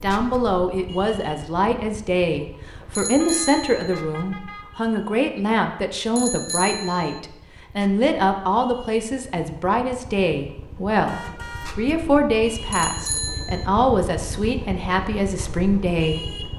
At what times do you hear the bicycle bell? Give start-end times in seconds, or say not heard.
3.0-4.0, 6.2-7.2, 12.7-13.7.